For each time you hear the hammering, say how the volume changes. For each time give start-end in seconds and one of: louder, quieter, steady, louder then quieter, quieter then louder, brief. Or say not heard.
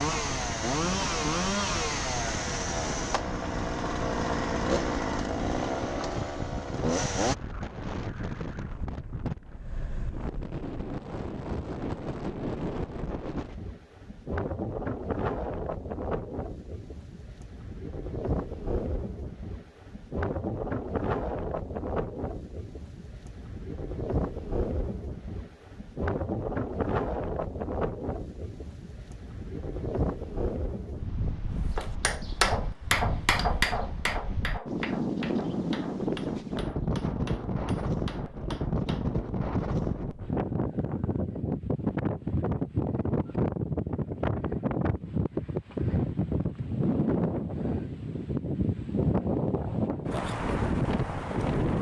31.8-39.1 quieter.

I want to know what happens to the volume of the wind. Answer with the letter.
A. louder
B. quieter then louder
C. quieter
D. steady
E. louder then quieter
A.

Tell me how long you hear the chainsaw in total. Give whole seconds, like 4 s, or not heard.
7 s.